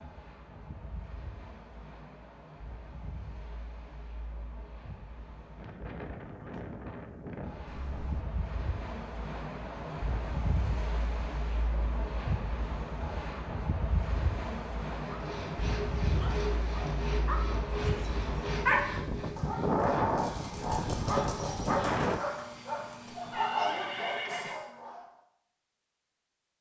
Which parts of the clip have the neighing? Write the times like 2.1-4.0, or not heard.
7.7-8.2, 23.1-24.6.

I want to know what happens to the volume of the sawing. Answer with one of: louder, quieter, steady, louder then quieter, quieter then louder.
quieter.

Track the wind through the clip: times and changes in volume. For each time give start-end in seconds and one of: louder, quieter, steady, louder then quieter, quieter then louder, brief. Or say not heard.
0.0-22.2 louder.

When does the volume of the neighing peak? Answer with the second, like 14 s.
24 s.